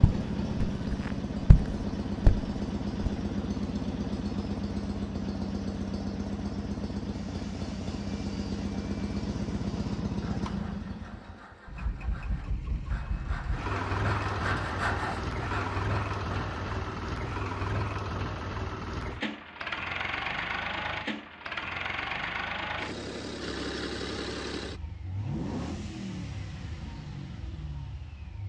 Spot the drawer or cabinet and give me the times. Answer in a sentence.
You can't hear the drawer or cabinet here.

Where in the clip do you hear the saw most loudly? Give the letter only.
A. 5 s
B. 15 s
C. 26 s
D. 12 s
B.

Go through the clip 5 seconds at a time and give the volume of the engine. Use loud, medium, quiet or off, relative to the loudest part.
loud, loud, loud, loud, loud, medium.